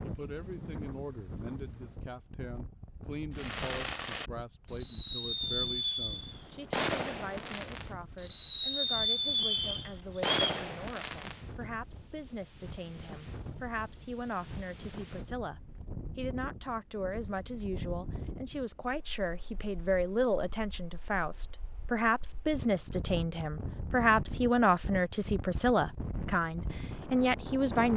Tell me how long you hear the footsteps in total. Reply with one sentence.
You can't hear the footsteps here.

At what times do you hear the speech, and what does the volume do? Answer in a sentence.
The speech can be heard from 0.0 to 27.9 s, getting louder.